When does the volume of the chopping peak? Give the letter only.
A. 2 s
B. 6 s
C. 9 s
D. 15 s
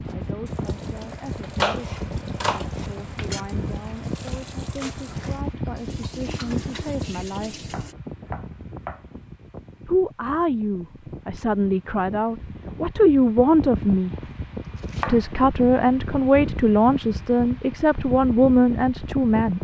A.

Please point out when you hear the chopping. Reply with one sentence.
You can hear the chopping from 1.6 to 3.4 s, from 7.7 to 9.1 s and from 14.2 to 15.3 s.